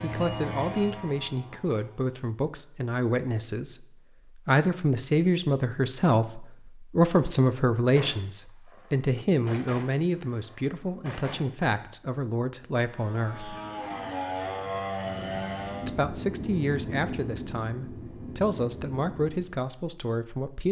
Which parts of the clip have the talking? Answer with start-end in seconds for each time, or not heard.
0.0-13.6, 15.8-20.6.